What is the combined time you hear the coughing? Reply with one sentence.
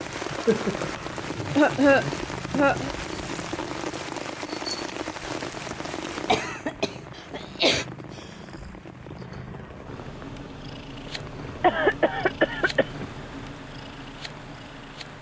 You can hear the coughing for 6 seconds altogether.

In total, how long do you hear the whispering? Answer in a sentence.
You can't hear the whispering here.